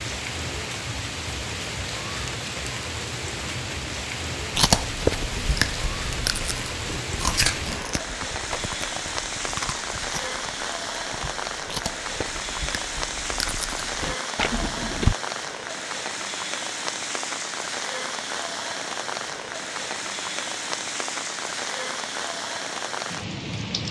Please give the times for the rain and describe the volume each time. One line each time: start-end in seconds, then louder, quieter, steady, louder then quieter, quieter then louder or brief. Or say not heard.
0.0-23.8 steady.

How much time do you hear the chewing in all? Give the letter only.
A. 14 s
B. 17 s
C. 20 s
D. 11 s
D.